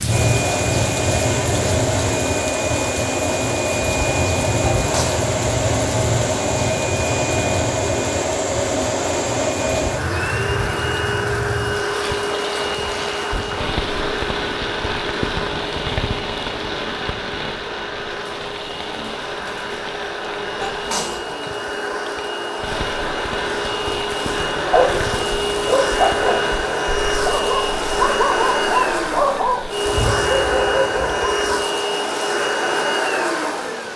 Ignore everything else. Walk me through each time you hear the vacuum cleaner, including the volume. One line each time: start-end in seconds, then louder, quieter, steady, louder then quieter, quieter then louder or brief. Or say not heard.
0.0-33.9 quieter then louder.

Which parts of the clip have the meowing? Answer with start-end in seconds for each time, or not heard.
not heard.